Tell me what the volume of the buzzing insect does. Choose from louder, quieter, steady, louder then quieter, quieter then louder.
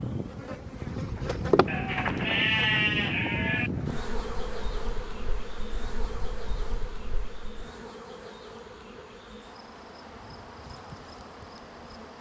quieter.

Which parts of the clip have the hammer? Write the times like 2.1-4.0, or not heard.
not heard.